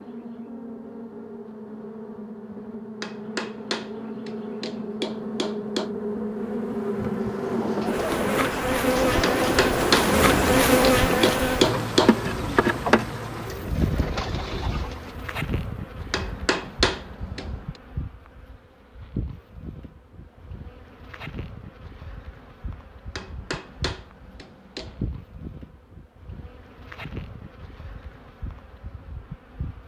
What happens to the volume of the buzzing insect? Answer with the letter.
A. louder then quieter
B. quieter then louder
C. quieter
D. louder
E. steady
A.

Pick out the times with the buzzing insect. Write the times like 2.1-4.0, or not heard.
0.0-29.8.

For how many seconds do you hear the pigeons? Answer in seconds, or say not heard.
8 s.